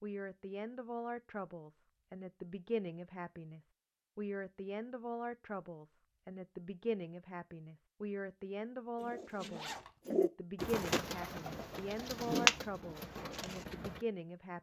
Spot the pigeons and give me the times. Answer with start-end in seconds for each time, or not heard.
9.0-14.0.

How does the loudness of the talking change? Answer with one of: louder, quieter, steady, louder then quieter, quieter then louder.
steady.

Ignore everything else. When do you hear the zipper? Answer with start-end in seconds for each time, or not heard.
9.5-9.9.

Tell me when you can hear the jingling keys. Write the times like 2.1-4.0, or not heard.
not heard.